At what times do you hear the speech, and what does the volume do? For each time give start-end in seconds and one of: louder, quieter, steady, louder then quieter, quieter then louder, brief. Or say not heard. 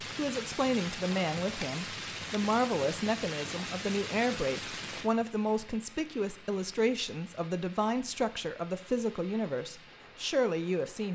0.0-11.0 steady.